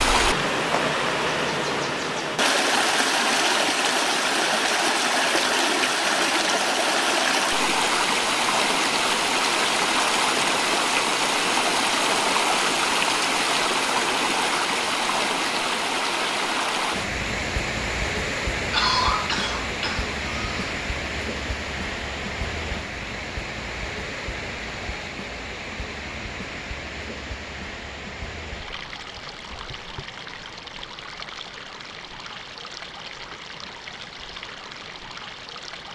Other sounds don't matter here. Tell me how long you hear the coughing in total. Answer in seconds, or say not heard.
2 s.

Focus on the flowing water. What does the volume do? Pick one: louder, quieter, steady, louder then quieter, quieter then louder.
quieter.